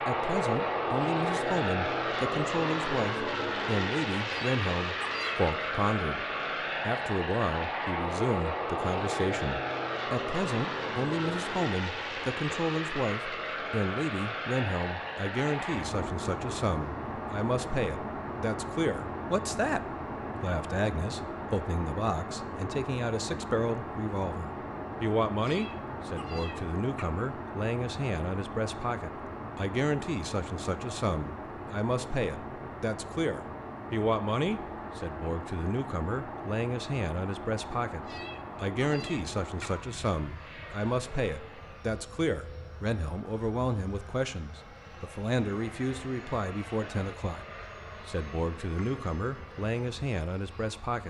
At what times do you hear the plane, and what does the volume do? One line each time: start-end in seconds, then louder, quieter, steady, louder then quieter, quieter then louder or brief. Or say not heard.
0.0-51.0 quieter.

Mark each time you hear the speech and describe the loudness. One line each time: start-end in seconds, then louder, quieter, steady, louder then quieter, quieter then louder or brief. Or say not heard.
0.1-6.2 steady
6.8-47.5 steady
48.0-51.0 brief.